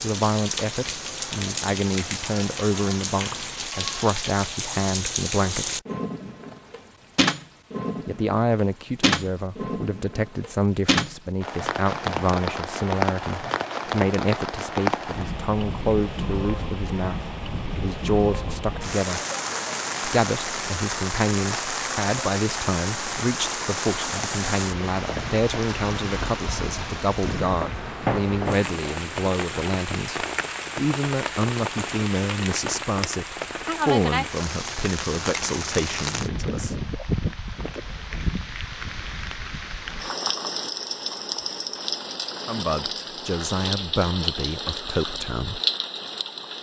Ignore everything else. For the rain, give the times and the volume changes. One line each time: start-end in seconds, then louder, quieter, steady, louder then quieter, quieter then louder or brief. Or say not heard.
0.0-46.5 steady.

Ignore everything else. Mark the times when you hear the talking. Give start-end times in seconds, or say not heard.
0.0-5.8, 8.1-19.2, 20.0-36.8, 42.5-45.6.